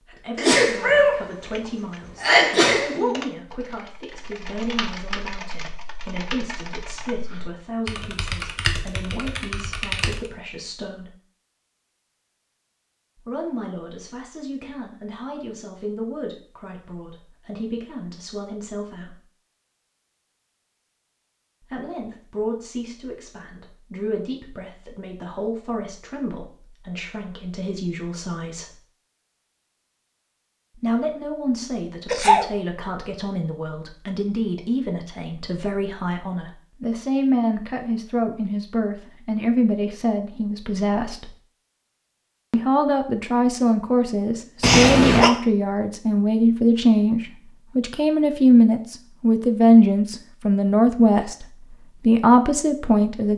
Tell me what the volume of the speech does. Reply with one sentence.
The volume of the speech goes up.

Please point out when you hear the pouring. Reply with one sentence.
You can't hear the pouring here.